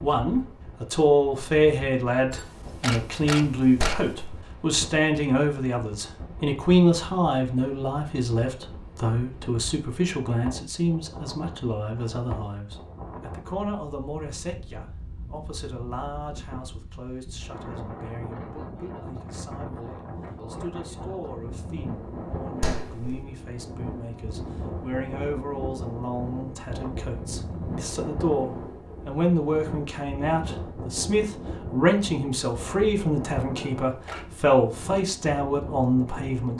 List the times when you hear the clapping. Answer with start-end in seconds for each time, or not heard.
3.8-4.4, 22.6-23.2.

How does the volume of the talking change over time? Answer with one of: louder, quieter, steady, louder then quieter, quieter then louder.
quieter then louder.